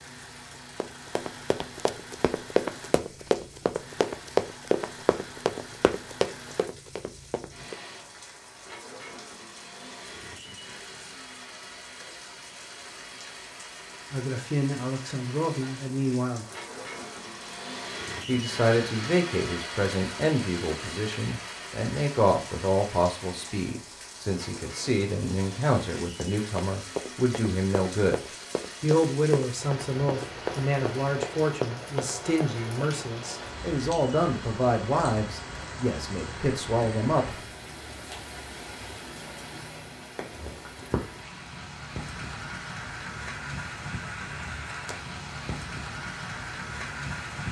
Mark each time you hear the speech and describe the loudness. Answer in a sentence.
The speech can be heard briefly from 14.1 to 16.4 s; and from 18.2 to 37.5 s, at a steady volume.